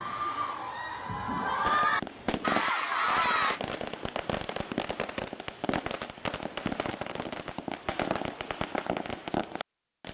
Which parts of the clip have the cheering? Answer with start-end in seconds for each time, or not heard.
0.0-3.6.